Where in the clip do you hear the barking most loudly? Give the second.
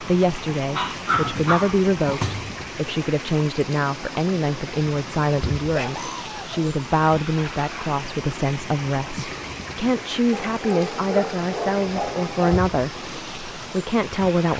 1 s.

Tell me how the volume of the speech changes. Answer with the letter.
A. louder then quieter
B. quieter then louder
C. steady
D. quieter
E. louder
C.